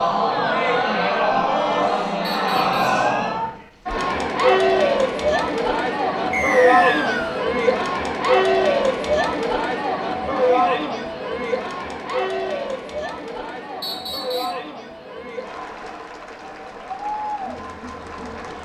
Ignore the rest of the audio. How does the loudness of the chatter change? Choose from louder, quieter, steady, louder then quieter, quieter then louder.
quieter.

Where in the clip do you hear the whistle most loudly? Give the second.
7 s.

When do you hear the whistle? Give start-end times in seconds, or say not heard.
2.2-3.0, 6.3-7.5, 13.8-14.6.